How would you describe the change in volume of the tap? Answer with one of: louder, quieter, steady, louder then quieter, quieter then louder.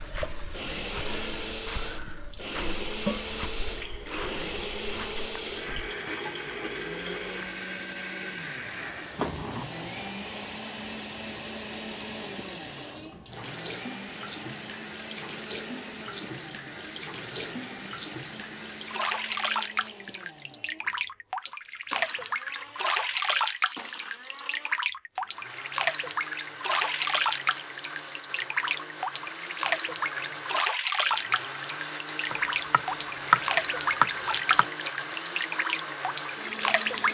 louder.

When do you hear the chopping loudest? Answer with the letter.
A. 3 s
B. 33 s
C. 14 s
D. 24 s
B.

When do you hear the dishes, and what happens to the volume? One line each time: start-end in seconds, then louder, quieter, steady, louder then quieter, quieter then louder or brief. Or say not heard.
not heard.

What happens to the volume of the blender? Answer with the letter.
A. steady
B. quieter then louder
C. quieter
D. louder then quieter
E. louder
B.